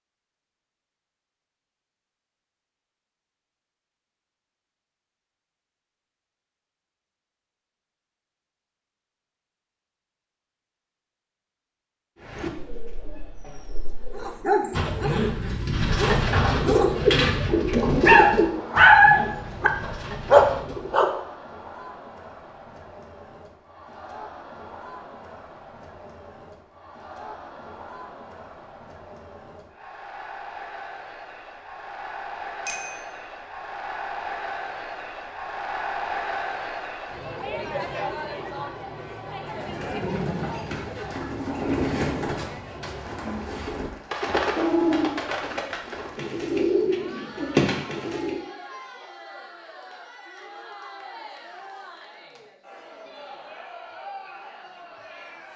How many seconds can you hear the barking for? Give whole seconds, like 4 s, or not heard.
7 s.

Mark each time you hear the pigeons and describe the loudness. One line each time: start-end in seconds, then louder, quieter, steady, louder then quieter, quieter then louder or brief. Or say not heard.
12.2-21.1 louder then quieter
39.5-48.5 louder.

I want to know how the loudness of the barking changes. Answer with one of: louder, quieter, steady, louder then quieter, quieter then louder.
louder.